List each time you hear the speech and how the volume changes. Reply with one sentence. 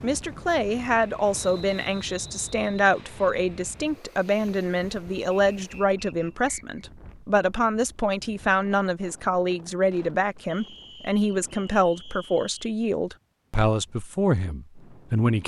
The speech can be heard from 0.0 to 15.4 s, at a steady volume.